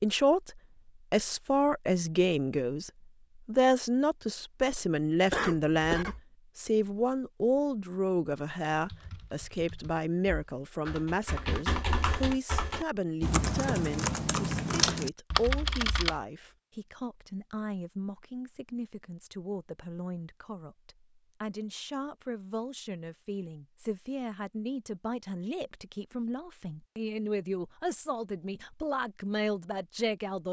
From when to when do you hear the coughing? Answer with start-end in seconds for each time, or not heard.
5.3-6.2.